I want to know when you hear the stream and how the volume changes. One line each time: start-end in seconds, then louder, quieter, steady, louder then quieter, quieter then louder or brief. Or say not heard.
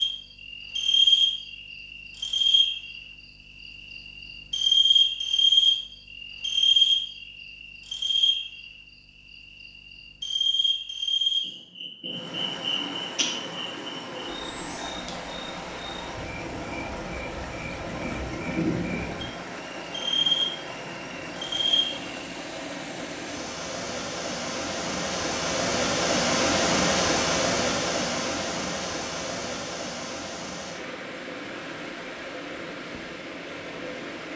12.1-34.3 louder then quieter.